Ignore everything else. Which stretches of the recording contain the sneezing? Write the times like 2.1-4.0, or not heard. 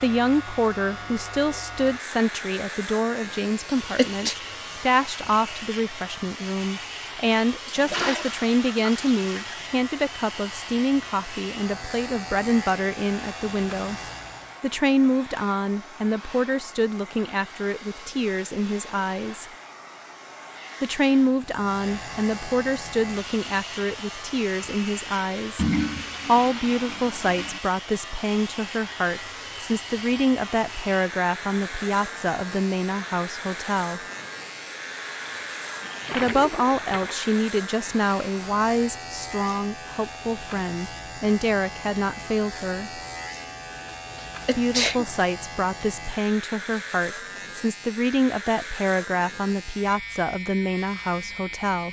3.6-4.3, 44.1-45.0.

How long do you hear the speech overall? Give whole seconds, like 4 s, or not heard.
46 s.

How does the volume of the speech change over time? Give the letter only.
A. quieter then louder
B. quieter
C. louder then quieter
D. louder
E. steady
E.